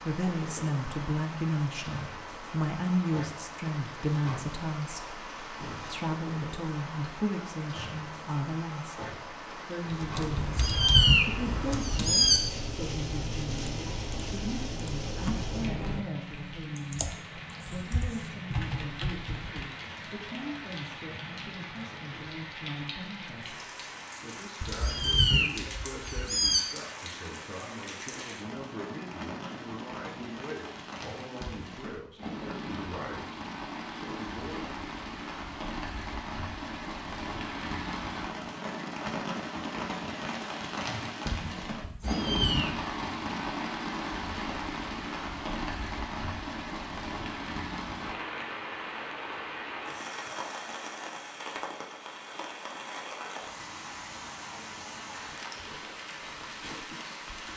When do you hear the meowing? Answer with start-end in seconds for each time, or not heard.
10.3-12.4, 24.6-26.6, 41.8-42.7.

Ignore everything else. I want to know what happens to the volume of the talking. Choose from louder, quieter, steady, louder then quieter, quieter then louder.
quieter.